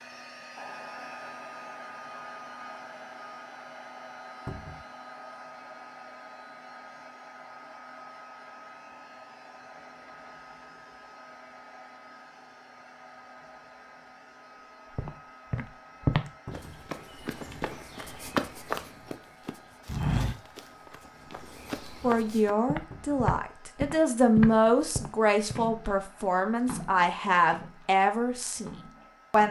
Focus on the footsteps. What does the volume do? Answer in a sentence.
The loudness of the footsteps goes down, then up.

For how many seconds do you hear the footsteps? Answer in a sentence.
The footsteps can be heard for 11 seconds in total.